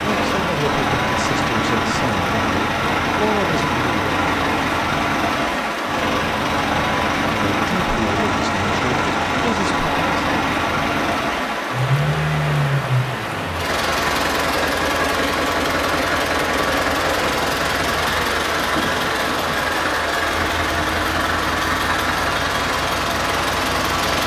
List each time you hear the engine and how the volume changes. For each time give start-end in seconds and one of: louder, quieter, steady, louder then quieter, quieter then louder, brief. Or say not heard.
0.0-24.2 steady.